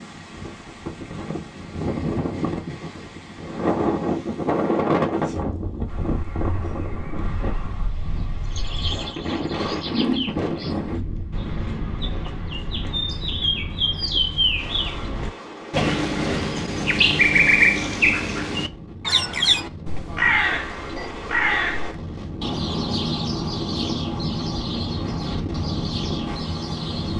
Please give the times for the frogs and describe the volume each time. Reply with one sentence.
You can't hear the frogs here.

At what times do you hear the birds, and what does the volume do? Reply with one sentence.
You can hear the birds from 5.8 to 27.1 s, getting louder then quieter.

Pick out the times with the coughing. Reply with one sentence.
The coughing can't be heard in this clip.